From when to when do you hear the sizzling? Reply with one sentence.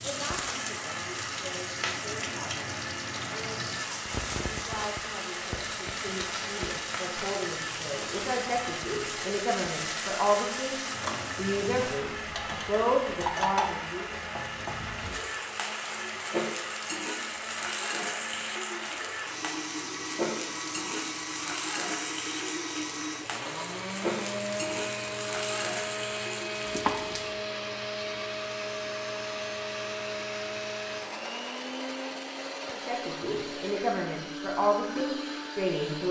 You can hear the sizzling from 0.0 to 27.4 s.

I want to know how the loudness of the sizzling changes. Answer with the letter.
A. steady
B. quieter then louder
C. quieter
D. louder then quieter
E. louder
A.